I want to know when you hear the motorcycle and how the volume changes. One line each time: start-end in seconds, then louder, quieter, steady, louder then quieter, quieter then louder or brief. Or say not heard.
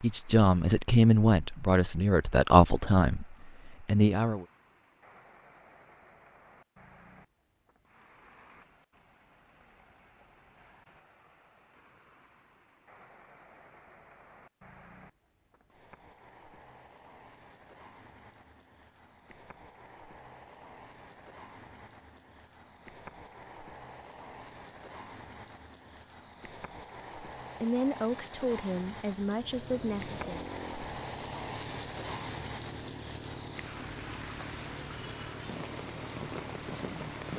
29.2-37.3 steady.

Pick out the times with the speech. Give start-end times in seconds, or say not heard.
0.0-4.5, 27.6-30.5.